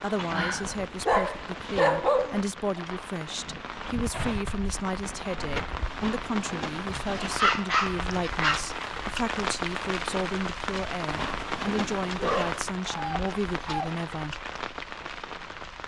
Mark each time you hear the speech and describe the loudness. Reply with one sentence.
You can hear the speech from 0.0 to 14.3 s, at a steady volume.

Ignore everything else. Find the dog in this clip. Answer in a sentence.
The dog can be heard from 0.3 to 2.4 s, from 6.8 to 8.6 s and from 12.2 to 13.9 s.